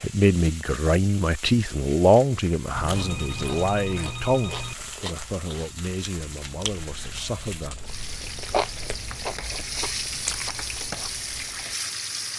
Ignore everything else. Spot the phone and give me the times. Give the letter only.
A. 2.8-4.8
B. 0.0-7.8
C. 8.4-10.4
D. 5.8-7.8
A.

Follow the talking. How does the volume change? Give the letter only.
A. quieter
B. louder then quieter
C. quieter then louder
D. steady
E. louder
A.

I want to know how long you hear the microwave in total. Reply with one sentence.
You can't hear the microwave here.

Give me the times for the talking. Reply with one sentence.
The talking can be heard from 0.0 to 7.8 s.